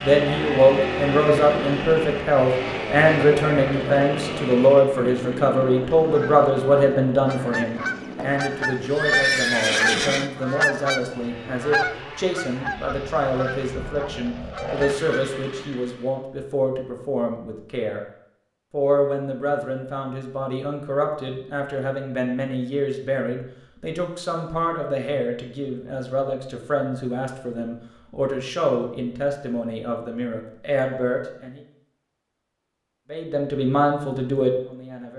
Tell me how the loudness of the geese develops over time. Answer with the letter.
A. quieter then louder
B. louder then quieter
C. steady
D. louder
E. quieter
B.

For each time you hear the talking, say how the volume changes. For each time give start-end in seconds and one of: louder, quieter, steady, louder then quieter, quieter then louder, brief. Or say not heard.
0.0-18.0 quieter
18.7-31.6 steady
33.1-35.1 brief.